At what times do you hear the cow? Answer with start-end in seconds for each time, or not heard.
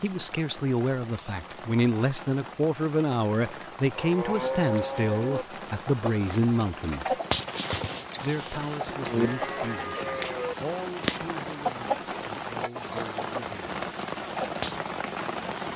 4.0-5.5, 9.1-10.6.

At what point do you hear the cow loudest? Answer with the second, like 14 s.
5 s.